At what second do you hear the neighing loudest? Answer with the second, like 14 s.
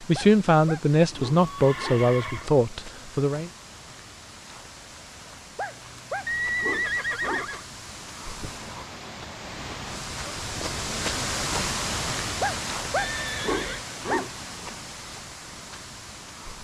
7 s.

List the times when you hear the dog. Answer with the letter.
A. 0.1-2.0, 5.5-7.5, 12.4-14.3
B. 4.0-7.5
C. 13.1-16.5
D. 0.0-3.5
A.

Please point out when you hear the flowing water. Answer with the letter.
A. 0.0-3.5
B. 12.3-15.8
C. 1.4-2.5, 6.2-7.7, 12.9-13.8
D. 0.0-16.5
D.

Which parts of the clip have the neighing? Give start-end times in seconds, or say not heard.
1.4-2.5, 6.2-7.7, 12.9-13.8.